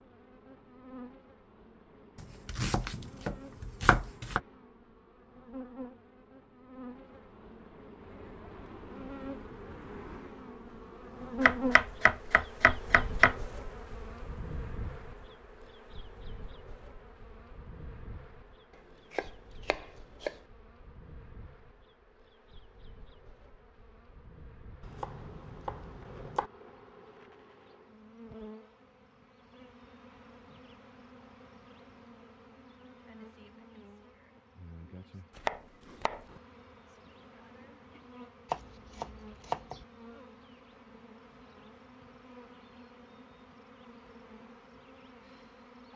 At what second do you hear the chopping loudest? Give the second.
13 s.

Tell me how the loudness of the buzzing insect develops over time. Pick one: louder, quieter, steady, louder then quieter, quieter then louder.
louder then quieter.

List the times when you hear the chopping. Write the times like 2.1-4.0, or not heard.
2.5-4.4, 11.4-13.3, 19.1-20.4, 24.8-26.5, 35.4-36.4, 38.5-39.9.